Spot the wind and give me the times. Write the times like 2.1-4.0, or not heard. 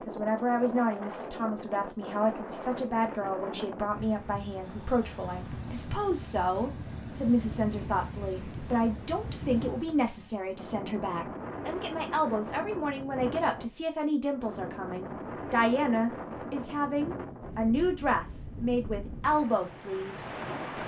0.0-20.8.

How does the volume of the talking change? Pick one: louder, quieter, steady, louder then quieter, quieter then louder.
steady.